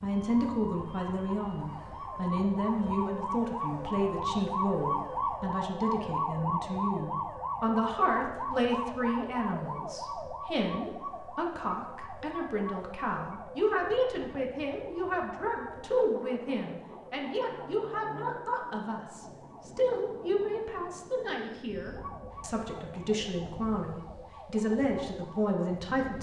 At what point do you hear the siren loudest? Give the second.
5 s.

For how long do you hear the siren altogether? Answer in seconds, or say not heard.
26 s.